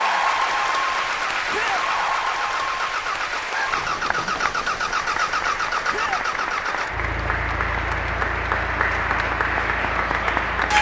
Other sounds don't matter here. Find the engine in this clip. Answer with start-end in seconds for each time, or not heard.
0.2-10.7.